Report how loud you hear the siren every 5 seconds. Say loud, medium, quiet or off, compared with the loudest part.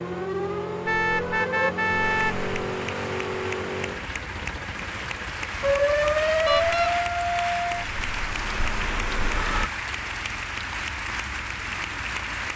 medium, loud, off.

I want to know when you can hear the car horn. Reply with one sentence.
The car horn can be heard from 0.8 to 2.5 s and from 6.5 to 6.9 s.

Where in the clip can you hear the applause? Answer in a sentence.
You can hear the applause from 2.1 to 12.5 s.